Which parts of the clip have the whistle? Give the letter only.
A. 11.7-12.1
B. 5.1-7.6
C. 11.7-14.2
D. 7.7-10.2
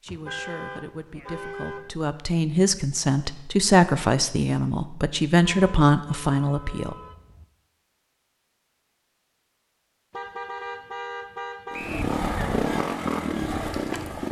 A.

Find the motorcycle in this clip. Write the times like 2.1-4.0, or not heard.
11.7-14.2.